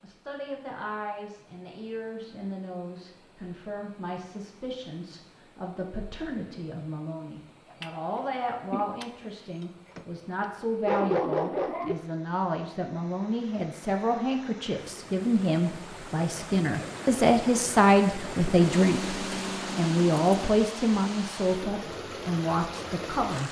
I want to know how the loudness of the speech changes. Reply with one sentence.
The volume of the speech goes up.